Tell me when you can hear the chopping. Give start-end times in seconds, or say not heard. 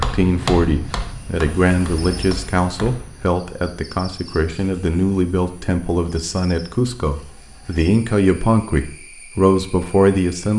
0.0-3.3.